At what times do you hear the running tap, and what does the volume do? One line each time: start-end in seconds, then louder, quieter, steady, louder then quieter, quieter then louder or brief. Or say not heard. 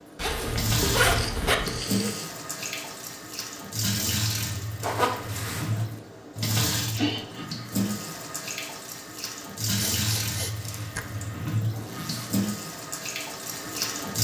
0.0-14.2 steady.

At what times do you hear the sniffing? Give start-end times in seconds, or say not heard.
1.0-2.3, 6.8-7.5, 9.8-11.1.